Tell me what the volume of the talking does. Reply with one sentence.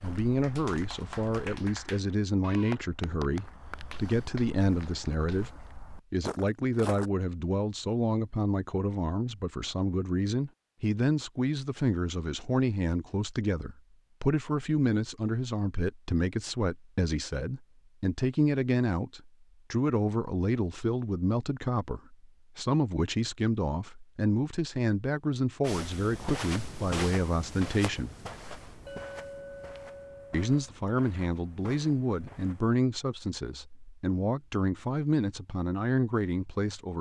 The volume of the talking stays about the same.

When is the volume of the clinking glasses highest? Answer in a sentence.
The loudest moment of the clinking glasses is at 29 seconds.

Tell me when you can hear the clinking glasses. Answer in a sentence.
The clinking glasses can be heard from 28.9 to 30.4 s.